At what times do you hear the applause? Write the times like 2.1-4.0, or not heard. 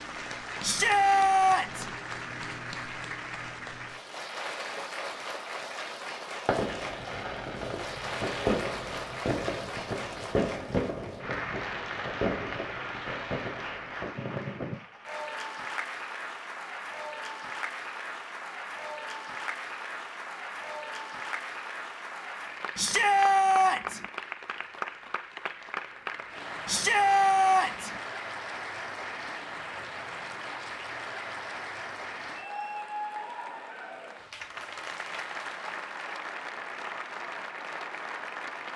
0.0-38.7.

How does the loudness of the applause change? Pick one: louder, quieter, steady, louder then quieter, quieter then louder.
steady.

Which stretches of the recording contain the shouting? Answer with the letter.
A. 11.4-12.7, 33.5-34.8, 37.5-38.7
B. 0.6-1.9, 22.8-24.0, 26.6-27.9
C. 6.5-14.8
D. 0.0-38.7
B.